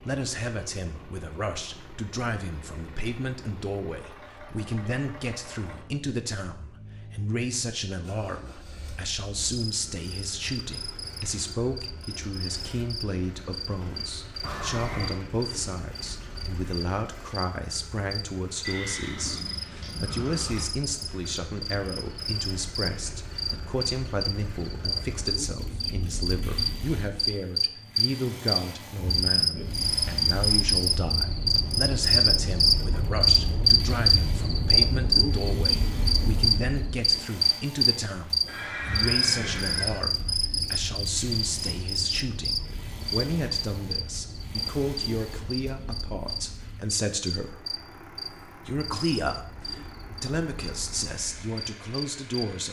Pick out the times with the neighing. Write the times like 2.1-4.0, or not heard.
14.4-15.2, 18.6-20.6, 38.5-40.0.